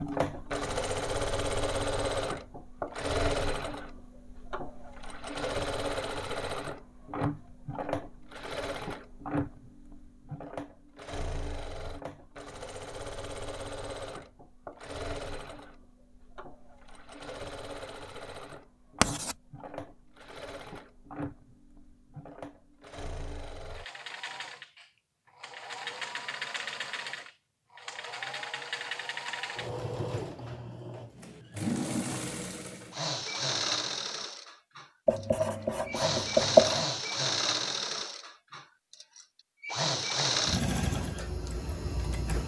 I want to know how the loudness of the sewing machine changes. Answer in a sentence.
The loudness of the sewing machine goes down, then up.